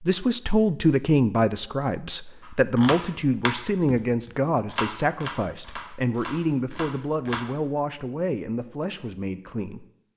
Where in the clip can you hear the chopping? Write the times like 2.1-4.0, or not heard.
2.4-7.4.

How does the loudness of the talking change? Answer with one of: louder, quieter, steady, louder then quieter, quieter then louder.
quieter.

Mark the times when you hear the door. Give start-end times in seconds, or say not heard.
not heard.